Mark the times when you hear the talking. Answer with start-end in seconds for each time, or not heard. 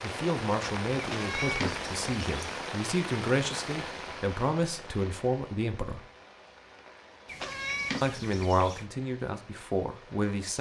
0.0-6.0, 8.0-10.5.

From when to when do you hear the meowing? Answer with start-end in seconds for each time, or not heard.
0.9-2.6, 7.2-8.8.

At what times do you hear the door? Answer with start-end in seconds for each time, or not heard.
not heard.